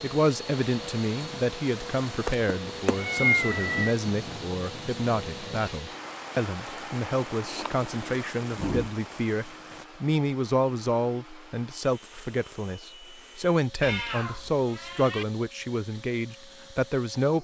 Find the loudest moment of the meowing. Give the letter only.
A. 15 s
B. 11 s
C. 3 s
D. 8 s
C.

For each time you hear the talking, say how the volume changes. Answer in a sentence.
You can hear the talking from 0.0 to 17.3 s, at a steady volume.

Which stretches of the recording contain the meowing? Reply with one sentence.
The meowing can be heard from 2.2 to 4.0 s, from 7.5 to 8.9 s and from 13.8 to 15.2 s.